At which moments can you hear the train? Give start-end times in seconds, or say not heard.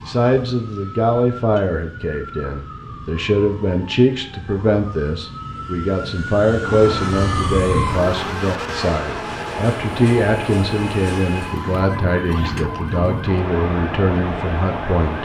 6.7-15.2.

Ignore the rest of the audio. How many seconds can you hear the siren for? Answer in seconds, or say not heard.
15 s.